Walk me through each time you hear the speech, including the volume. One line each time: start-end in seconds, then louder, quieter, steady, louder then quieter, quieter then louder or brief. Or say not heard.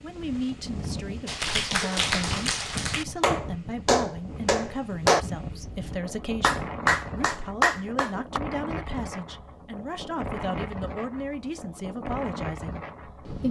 0.0-13.4 steady.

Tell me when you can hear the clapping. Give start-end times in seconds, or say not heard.
1.2-8.4.